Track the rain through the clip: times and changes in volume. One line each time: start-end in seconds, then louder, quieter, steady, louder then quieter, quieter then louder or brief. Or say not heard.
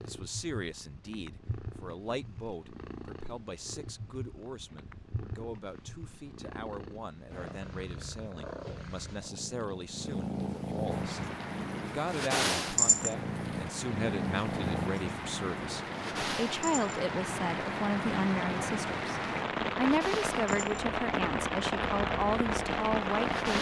10.8-23.5 louder.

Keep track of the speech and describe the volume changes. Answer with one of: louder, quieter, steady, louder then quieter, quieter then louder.
louder.